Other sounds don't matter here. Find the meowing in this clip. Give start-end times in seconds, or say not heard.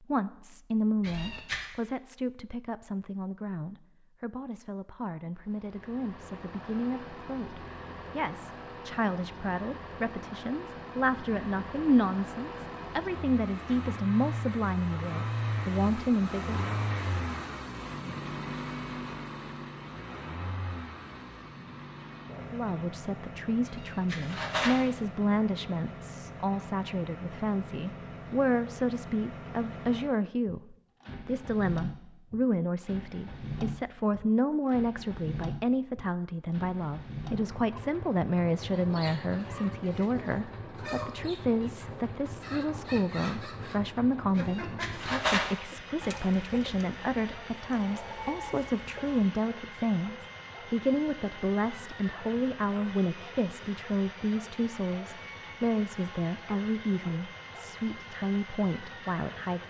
1.0-1.6, 23.6-24.8, 44.4-45.5.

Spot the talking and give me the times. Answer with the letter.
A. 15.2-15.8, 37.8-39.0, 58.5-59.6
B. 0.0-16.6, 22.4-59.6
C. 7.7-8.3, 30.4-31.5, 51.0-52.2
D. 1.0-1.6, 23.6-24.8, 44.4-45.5
B.